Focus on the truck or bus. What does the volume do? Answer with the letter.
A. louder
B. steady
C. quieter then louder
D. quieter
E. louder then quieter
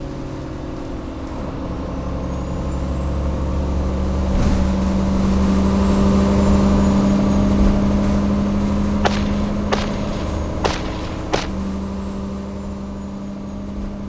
E.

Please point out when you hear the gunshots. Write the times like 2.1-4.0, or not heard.
9.0-11.5.